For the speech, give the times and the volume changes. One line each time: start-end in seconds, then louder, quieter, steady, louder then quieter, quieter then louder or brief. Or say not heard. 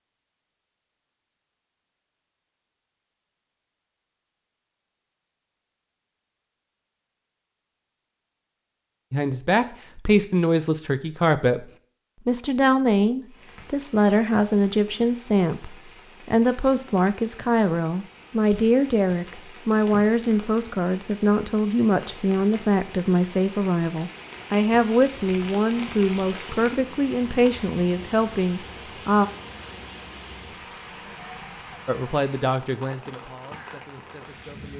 9.1-11.7 brief
12.2-29.2 steady
31.9-34.7 brief.